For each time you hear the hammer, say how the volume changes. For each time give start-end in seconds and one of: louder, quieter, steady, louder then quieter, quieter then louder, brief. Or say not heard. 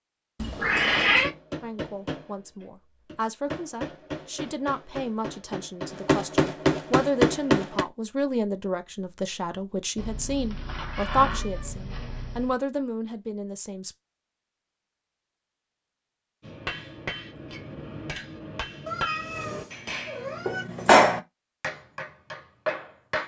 0.9-7.8 louder
16.4-23.2 louder then quieter.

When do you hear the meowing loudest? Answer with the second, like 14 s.
1 s.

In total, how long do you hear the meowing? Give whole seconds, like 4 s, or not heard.
5 s.